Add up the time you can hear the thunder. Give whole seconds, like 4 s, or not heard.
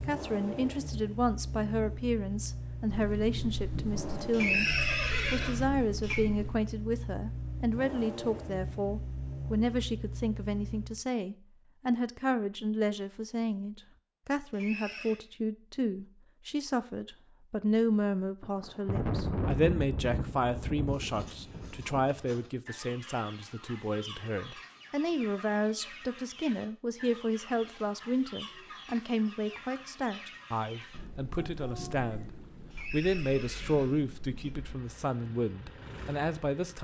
11 s.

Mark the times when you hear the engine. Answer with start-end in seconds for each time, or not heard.
0.0-11.0, 34.4-36.7.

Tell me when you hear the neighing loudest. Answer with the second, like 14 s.
5 s.